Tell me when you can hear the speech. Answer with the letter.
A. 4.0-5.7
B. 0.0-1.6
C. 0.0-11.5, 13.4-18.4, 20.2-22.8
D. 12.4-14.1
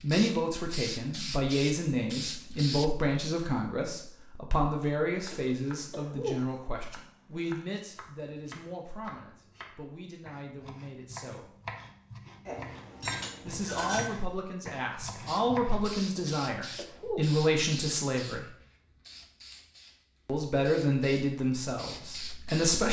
C.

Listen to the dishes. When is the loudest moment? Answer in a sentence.
The loudest moment of the dishes is at 14 seconds.